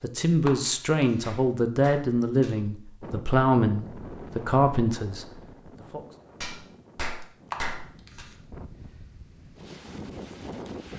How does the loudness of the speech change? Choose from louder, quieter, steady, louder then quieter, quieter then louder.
steady.